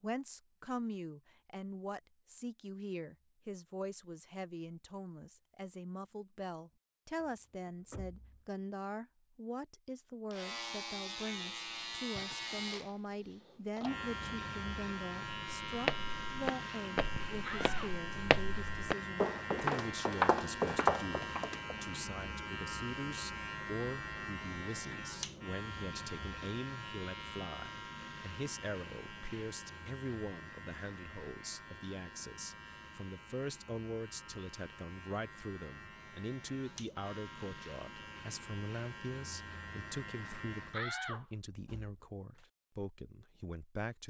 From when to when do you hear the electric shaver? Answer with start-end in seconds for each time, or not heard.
10.3-40.9.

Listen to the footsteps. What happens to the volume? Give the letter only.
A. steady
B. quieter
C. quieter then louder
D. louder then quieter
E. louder
C.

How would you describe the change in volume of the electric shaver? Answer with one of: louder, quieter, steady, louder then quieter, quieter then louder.
quieter.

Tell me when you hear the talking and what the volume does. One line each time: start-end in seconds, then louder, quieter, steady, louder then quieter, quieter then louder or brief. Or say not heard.
0.0-44.0 steady.